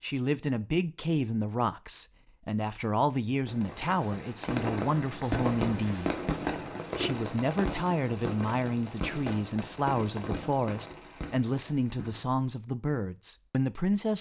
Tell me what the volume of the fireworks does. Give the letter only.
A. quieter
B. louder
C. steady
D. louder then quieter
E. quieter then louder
A.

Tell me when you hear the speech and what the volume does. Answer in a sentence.
The speech can be heard from 0.0 to 6.2 s, at a steady volume; and from 7.0 to 14.1 s, at a steady volume.